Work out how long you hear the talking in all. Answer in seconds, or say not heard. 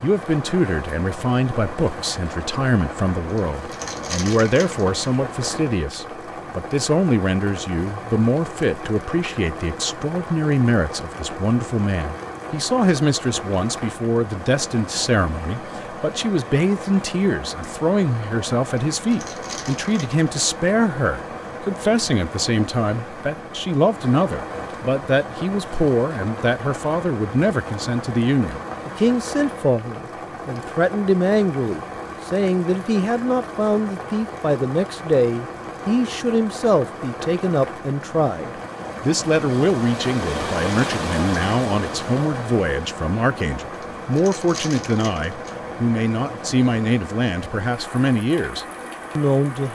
50 s.